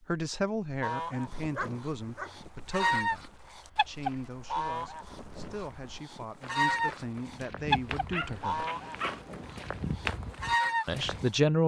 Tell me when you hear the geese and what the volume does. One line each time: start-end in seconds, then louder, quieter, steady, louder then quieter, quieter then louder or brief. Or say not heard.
0.8-11.3 steady.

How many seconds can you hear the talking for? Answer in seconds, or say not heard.
9 s.